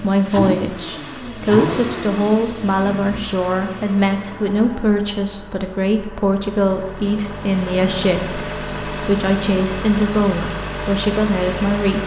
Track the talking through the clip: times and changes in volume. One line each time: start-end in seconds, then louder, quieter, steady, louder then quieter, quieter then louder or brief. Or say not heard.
0.0-12.0 steady.